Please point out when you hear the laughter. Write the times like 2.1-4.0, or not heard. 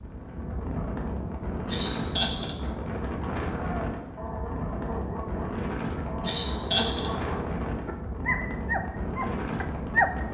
1.6-2.5, 6.2-7.1.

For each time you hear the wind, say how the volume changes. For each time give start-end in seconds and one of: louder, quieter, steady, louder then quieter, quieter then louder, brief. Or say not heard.
0.0-10.2 steady.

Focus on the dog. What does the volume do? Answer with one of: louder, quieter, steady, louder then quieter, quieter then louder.
louder.